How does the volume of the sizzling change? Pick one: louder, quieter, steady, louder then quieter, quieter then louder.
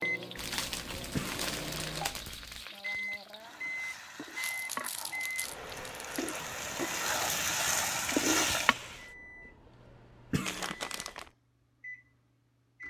louder.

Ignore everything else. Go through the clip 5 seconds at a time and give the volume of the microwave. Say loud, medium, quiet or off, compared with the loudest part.
loud, medium, quiet.